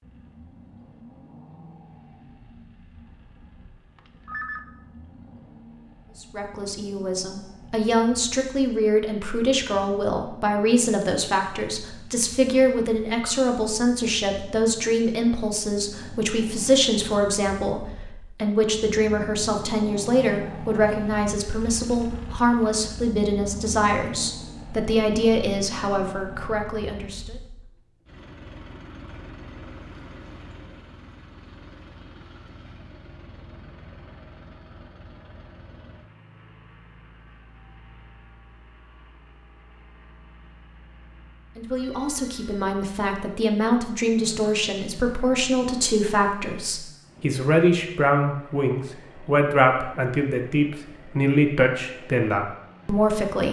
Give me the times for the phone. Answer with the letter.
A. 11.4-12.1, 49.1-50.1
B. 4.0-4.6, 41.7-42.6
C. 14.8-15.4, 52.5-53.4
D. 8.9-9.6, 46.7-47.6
B.